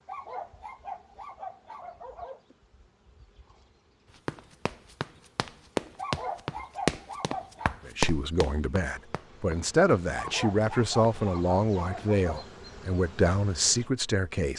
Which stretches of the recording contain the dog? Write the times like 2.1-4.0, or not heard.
0.1-2.4, 6.0-7.8, 10.2-12.4.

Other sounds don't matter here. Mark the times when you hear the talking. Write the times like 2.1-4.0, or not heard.
7.8-14.5.